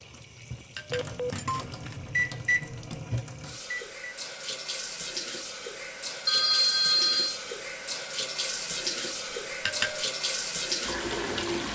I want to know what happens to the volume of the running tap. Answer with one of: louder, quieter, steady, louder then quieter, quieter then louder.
louder.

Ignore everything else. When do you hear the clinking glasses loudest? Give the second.
10 s.